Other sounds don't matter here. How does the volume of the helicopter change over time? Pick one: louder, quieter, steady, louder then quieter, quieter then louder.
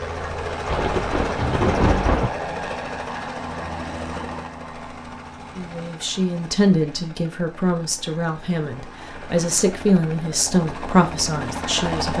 quieter then louder.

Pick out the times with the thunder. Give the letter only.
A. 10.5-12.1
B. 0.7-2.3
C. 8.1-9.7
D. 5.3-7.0
B.